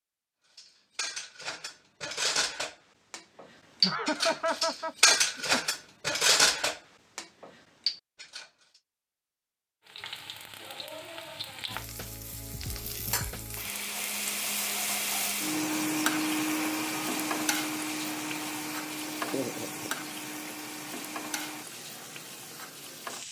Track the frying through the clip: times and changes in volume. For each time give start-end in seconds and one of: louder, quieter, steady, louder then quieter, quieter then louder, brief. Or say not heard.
9.8-23.2 louder then quieter.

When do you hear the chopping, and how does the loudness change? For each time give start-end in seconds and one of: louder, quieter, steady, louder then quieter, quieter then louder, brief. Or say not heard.
not heard.